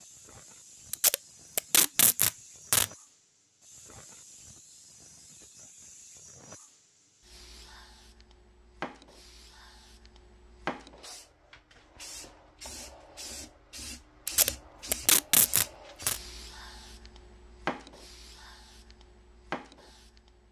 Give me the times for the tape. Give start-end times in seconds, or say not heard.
0.9-2.9, 14.2-16.2.